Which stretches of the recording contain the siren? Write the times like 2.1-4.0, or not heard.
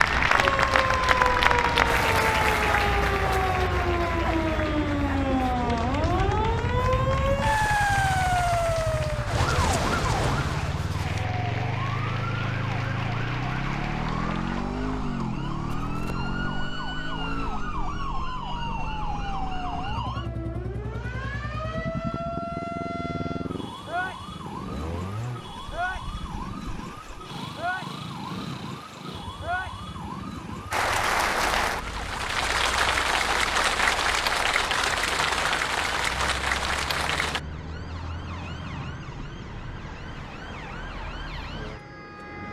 0.0-42.4.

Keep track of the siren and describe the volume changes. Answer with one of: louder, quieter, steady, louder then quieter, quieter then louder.
quieter.